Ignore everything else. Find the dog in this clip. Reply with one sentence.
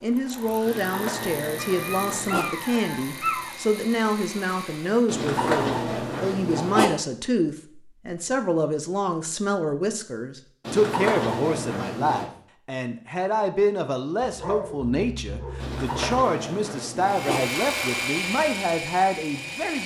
You can hear the dog from 1.6 to 3.5 s and from 14.2 to 16.2 s.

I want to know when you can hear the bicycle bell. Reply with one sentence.
You can't hear the bicycle bell here.